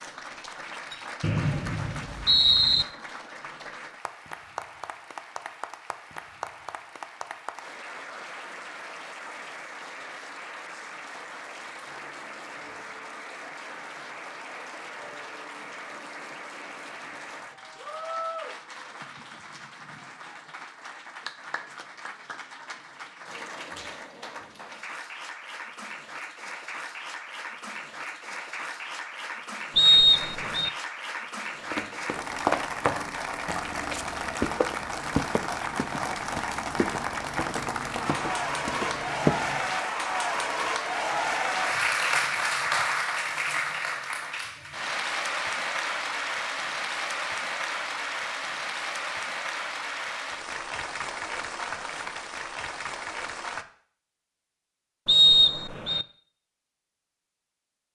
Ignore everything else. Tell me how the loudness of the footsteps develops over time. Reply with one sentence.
The loudness of the footsteps goes down, then up.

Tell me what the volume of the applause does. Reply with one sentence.
The loudness of the applause goes up.